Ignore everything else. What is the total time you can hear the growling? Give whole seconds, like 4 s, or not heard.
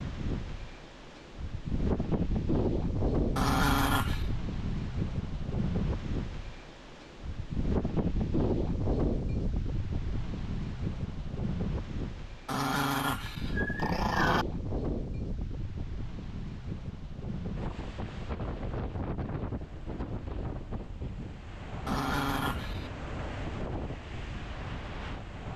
4 s.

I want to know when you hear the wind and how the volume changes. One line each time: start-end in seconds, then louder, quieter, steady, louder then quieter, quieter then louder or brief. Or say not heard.
0.0-25.5 quieter.